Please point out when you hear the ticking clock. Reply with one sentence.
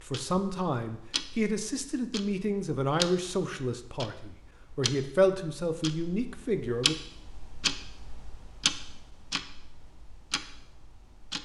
You can hear the ticking clock from 0.0 to 11.3 s.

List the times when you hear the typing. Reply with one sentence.
You can't hear the typing here.